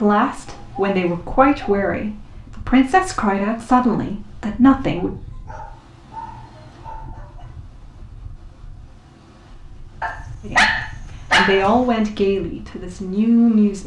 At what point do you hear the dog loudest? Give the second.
11 s.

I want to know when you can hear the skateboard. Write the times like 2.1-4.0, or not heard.
not heard.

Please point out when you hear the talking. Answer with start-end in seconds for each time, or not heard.
0.0-5.2, 10.4-13.8.